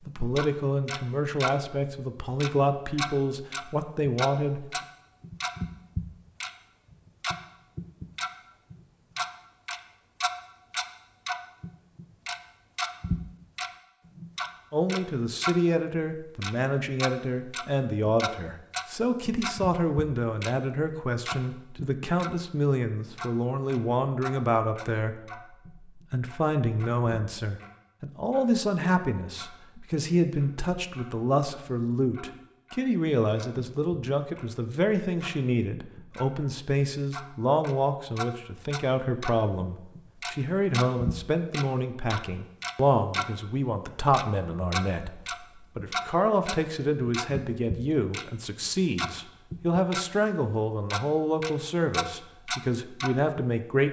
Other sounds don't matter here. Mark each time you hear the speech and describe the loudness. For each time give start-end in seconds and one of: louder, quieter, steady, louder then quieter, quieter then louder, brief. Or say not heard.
0.1-4.7 steady
14.7-25.2 steady
25.9-53.8 steady.